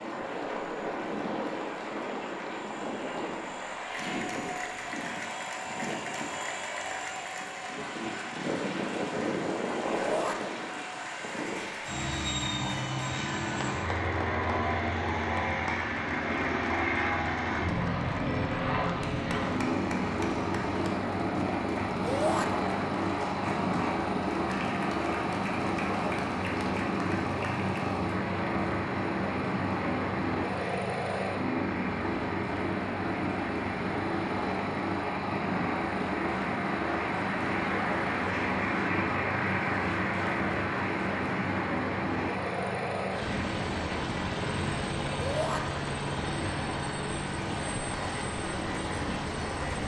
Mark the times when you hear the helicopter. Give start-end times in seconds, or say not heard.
0.0-49.8.